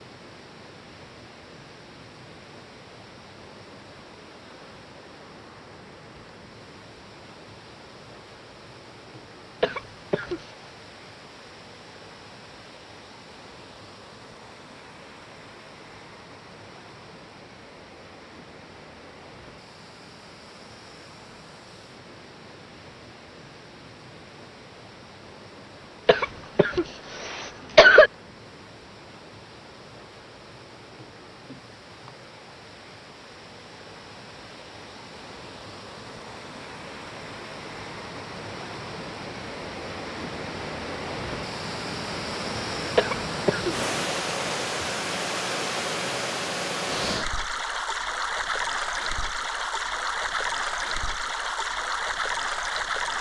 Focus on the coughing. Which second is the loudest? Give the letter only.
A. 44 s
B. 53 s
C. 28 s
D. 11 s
C.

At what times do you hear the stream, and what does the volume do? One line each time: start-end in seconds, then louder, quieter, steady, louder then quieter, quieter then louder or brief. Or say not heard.
0.0-53.1 louder.